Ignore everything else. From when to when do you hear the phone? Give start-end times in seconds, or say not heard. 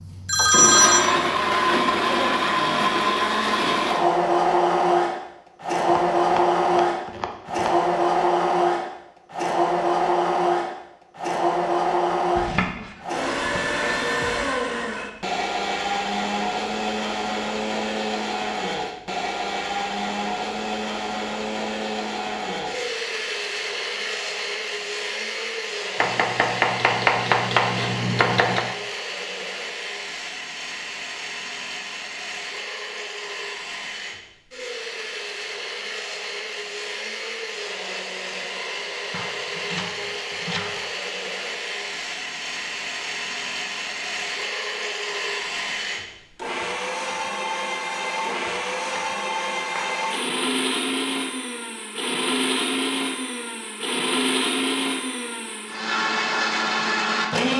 0.2-1.1.